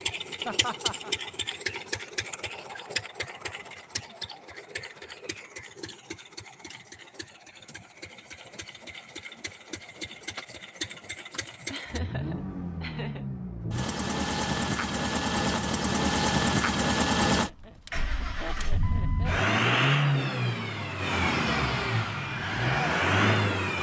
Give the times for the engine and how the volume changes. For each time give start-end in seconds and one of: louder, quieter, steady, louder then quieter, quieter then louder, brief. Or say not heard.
0.0-23.7 quieter then louder.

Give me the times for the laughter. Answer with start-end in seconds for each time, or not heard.
0.5-1.1, 11.7-13.2, 17.4-19.4.